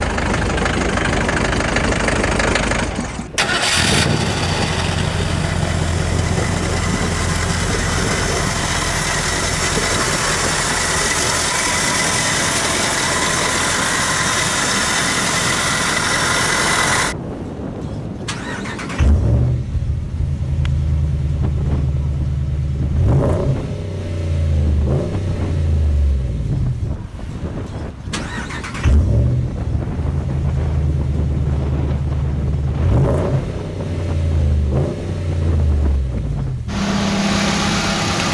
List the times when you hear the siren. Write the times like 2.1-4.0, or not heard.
not heard.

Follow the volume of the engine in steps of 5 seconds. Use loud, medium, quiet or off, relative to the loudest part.
loud, loud, loud, loud, loud, medium, loud, loud.